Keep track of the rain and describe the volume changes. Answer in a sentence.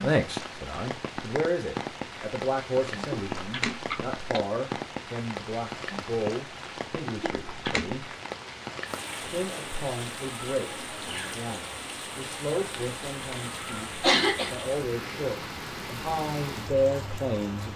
The loudness of the rain stays about the same.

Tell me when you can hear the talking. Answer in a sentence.
You can hear the talking from 0.0 to 8.1 s and from 9.2 to 17.7 s.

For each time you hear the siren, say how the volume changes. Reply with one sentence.
The siren can't be heard in this clip.